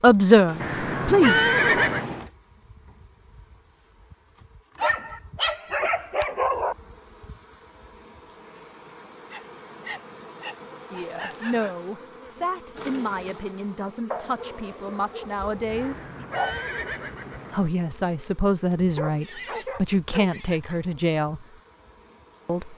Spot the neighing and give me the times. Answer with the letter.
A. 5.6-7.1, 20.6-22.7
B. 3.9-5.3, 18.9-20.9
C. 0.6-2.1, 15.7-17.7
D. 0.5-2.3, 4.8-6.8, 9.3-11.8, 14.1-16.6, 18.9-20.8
C.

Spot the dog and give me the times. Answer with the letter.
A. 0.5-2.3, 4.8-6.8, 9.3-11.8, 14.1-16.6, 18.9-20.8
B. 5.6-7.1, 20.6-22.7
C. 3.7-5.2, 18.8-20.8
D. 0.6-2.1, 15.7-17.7
A.